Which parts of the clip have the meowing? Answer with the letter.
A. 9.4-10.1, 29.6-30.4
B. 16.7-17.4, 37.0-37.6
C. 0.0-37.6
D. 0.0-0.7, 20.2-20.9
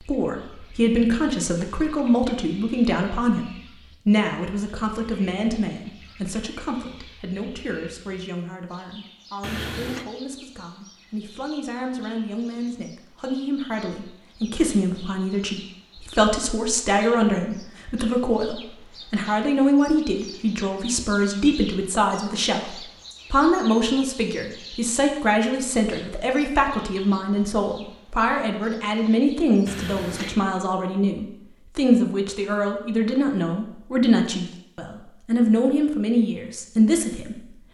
A.